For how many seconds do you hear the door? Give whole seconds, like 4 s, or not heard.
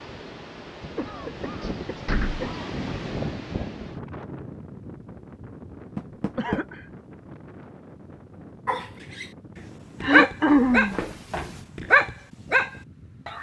3 s.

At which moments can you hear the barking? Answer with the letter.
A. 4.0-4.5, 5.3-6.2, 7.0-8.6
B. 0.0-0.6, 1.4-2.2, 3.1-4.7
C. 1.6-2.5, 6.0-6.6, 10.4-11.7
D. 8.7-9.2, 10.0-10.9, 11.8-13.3
D.